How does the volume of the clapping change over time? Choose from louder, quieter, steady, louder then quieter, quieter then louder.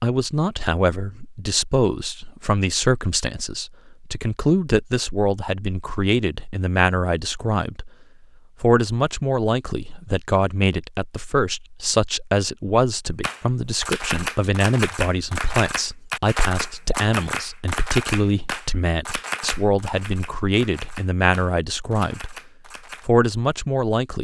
quieter.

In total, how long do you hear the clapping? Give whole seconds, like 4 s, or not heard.
10 s.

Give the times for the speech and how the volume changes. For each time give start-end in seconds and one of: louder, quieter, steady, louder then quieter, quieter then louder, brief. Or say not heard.
0.0-7.9 steady
8.6-22.4 steady
23.1-24.1 brief.